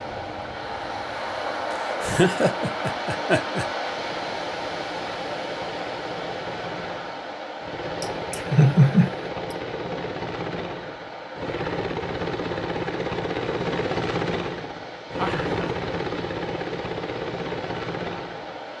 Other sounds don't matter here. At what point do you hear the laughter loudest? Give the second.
9 s.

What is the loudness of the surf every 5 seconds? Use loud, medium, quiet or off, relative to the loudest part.
loud, loud, medium, medium.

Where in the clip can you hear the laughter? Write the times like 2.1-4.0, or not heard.
2.0-3.6, 8.0-9.6, 15.2-15.8.